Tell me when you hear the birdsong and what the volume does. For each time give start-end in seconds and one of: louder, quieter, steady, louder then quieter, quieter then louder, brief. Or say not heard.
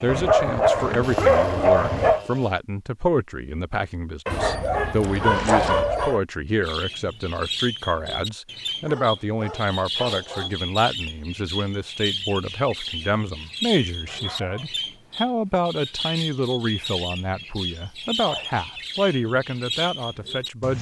6.6-20.7 steady.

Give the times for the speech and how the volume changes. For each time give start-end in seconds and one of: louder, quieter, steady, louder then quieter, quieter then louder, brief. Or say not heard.
0.0-20.7 steady.